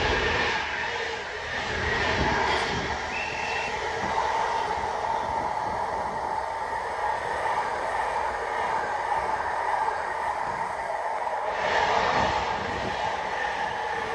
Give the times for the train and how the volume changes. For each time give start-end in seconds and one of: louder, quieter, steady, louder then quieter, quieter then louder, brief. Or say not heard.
0.0-14.1 steady.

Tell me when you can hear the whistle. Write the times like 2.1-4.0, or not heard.
2.5-3.7, 10.4-11.4.